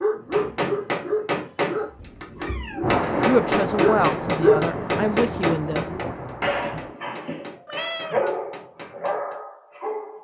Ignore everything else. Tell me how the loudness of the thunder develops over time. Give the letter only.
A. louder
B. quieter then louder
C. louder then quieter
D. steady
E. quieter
E.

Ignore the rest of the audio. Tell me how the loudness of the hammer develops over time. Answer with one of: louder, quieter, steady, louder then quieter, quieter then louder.
quieter.